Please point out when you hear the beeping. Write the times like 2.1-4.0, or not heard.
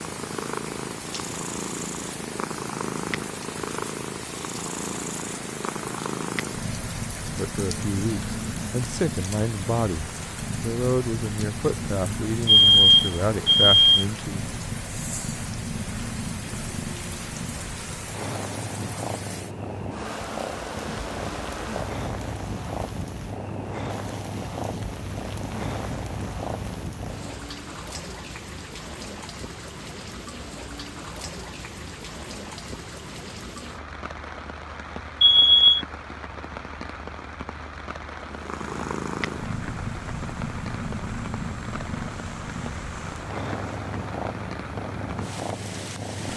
12.4-14.1, 35.2-35.9.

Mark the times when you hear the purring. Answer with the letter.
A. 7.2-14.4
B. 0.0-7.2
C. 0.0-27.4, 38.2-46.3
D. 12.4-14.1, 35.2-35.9
C.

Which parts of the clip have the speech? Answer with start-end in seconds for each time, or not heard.
7.2-14.4.